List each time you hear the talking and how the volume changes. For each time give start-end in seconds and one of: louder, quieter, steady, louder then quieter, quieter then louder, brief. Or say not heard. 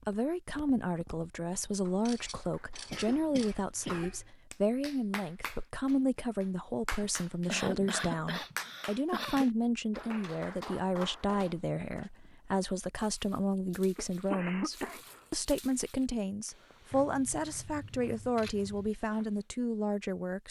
0.1-20.4 steady.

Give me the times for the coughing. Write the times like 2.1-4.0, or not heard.
2.9-4.3, 7.0-9.5, 13.9-15.2.